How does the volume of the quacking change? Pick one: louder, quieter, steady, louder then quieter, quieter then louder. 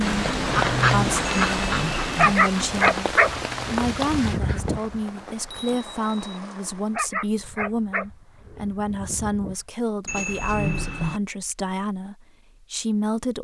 quieter.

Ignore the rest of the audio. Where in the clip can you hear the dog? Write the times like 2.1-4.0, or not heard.
2.1-5.0, 6.9-9.6.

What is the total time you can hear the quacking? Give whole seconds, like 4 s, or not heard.
5 s.